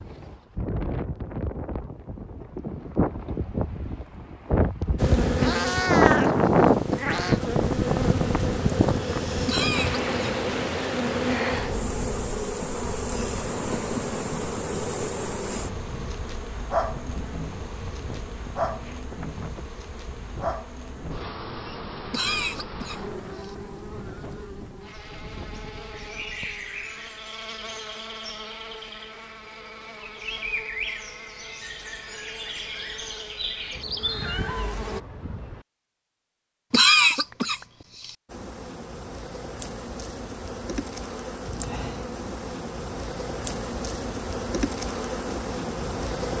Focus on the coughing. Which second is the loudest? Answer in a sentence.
The volume of the coughing peaks at 37 seconds.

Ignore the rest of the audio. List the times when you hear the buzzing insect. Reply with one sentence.
The buzzing insect can be heard from 5.0 to 35.0 s and from 38.2 to 46.3 s.